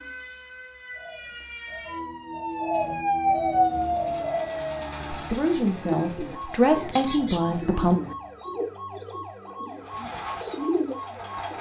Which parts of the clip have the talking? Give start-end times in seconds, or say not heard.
5.1-8.0.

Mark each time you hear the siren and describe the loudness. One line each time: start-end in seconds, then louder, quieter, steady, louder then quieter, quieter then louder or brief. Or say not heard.
0.0-11.5 louder then quieter.